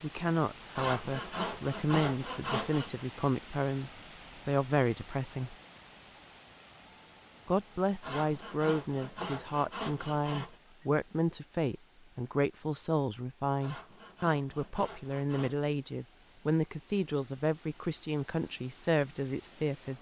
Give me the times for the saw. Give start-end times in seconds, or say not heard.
0.8-3.0, 8.0-10.6, 13.6-15.6.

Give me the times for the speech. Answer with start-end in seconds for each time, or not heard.
0.0-5.5, 7.5-19.9.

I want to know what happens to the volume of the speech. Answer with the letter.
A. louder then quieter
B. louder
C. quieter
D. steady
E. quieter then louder
D.